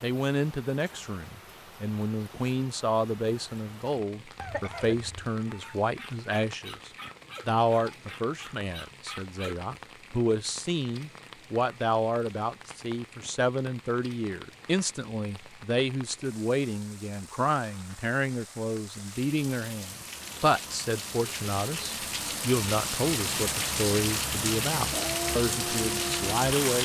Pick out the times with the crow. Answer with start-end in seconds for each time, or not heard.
not heard.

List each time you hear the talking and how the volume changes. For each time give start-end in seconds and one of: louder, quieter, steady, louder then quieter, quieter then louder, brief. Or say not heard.
0.0-26.8 steady.